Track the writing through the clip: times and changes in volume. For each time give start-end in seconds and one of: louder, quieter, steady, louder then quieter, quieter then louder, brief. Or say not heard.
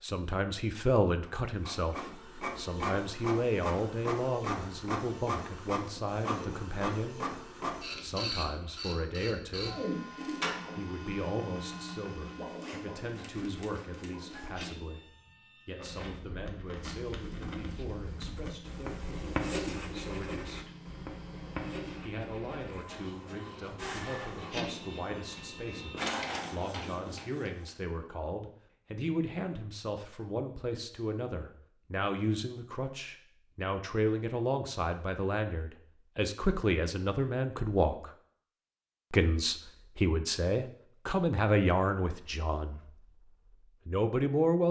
15.8-27.1 louder then quieter.